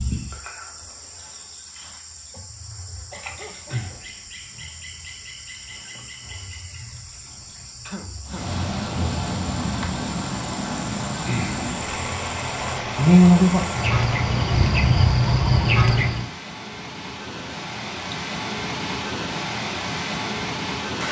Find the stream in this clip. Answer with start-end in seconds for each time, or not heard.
8.2-21.0.